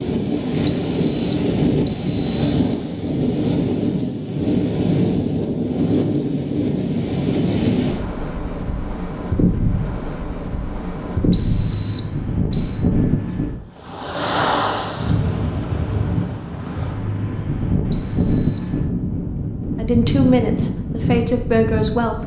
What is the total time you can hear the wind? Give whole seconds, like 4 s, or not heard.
22 s.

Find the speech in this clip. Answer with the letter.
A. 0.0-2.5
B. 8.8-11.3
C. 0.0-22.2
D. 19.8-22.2
D.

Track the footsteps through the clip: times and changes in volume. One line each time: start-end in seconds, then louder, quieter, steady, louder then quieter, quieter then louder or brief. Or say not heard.
not heard.